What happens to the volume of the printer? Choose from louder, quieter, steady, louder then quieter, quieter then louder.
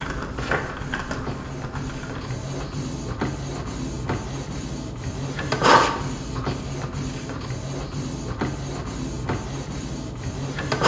louder then quieter.